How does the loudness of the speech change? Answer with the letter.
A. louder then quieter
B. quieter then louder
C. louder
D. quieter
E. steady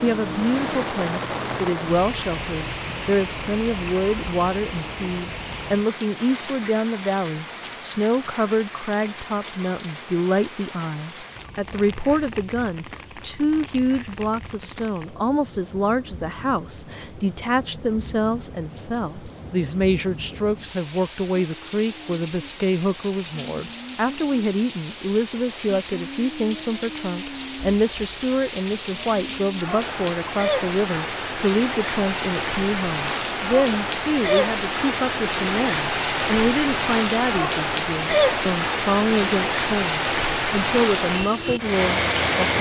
E.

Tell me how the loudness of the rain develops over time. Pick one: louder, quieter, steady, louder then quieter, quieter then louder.
quieter then louder.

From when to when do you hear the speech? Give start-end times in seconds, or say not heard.
0.0-42.5.